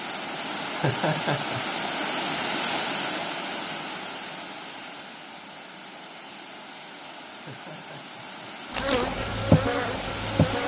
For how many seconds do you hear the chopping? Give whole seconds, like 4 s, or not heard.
not heard.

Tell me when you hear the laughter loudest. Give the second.
1 s.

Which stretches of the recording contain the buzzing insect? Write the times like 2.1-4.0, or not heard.
8.7-10.6.